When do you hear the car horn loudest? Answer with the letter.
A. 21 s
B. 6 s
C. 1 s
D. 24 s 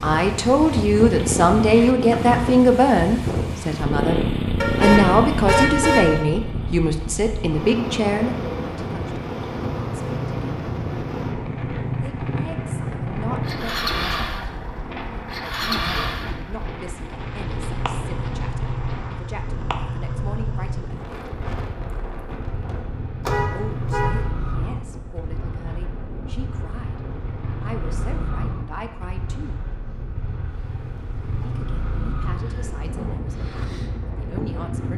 B.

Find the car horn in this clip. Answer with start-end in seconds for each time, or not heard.
4.6-6.2, 23.2-24.2.